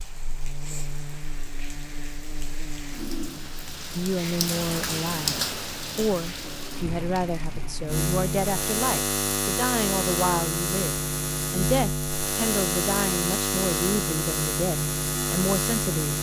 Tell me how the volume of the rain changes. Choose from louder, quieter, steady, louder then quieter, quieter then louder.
louder then quieter.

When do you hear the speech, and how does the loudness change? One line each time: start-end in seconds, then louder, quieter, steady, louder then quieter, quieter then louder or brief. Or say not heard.
4.0-16.1 steady.